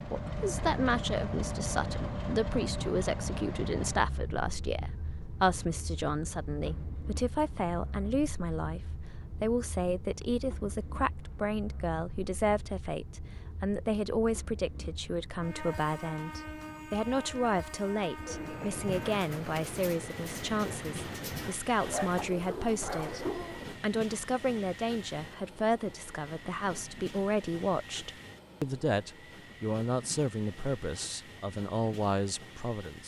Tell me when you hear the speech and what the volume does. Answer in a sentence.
You can hear the speech from 0.1 to 33.0 s, at a steady volume.